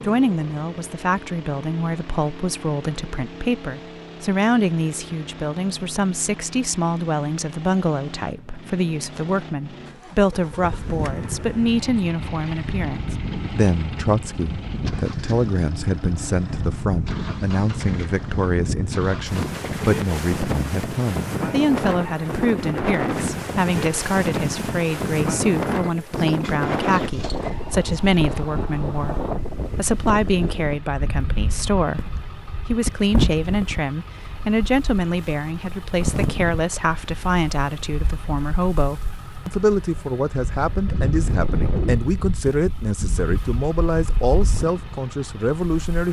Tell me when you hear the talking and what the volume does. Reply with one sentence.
The talking can be heard from 0.0 to 46.0 s, at a steady volume.